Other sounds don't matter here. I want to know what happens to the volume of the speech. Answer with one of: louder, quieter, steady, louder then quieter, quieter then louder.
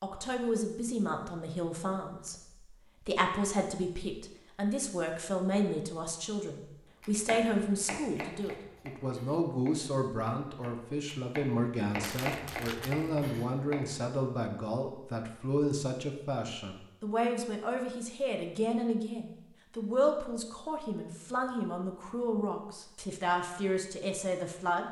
steady.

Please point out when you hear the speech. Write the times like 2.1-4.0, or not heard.
0.0-24.8.